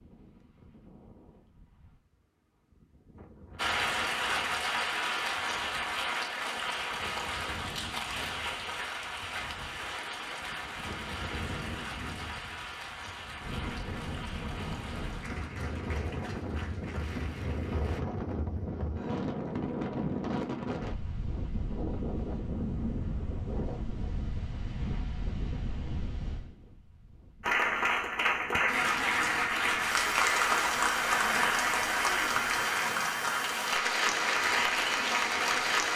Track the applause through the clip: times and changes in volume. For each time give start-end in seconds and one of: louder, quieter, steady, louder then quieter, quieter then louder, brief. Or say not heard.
3.5-18.0 quieter
27.4-35.9 steady.